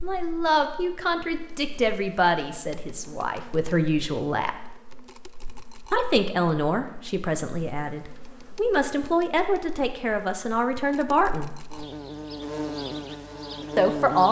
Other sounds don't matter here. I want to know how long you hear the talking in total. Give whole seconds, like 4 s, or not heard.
11 s.